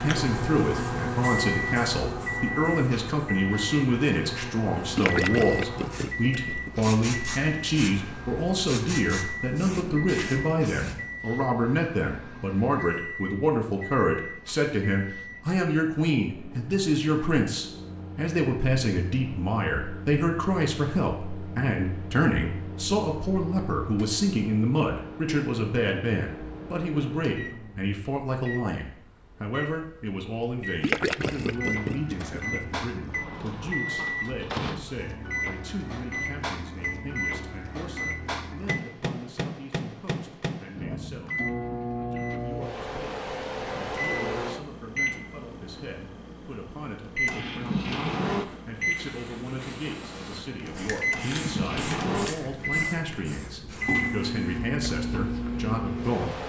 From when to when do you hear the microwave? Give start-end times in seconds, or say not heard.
0.0-56.4.